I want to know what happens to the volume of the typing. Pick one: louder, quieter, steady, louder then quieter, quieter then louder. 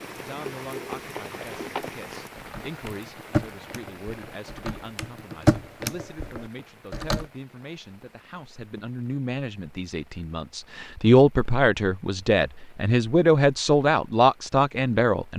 louder then quieter.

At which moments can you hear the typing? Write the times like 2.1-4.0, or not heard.
0.0-7.2.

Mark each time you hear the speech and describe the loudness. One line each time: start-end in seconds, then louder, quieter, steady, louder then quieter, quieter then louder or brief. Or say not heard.
0.1-15.3 louder.